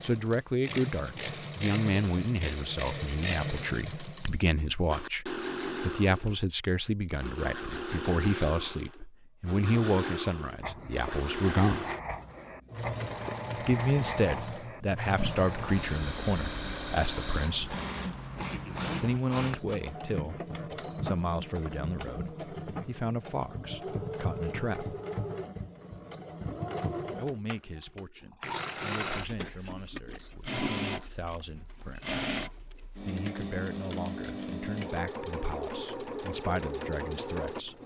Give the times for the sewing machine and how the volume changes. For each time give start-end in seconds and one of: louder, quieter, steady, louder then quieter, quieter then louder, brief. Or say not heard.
0.0-37.8 steady.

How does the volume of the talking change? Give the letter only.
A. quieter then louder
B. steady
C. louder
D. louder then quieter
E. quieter
E.